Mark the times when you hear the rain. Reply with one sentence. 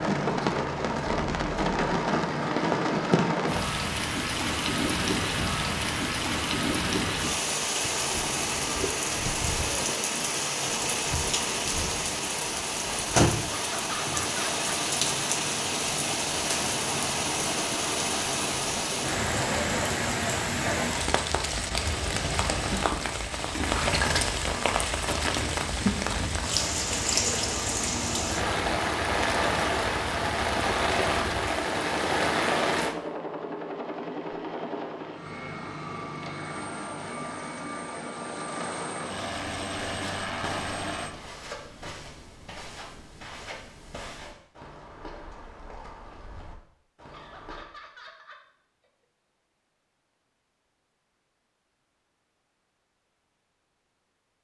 You can hear the rain from 0.0 to 33.0 s.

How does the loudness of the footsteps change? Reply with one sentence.
The volume of the footsteps goes down.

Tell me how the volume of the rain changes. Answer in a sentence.
The loudness of the rain stays about the same.